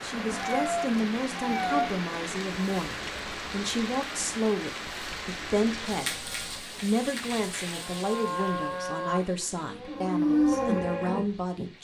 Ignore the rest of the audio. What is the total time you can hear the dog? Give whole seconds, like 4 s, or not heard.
not heard.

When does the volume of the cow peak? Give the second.
10 s.